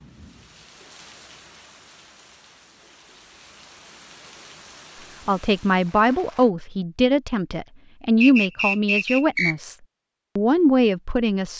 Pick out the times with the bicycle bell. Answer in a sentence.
You can't hear the bicycle bell here.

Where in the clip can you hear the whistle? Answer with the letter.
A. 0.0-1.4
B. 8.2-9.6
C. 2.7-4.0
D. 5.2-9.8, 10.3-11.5
B.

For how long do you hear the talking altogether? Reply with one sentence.
The talking can be heard for 6 seconds in total.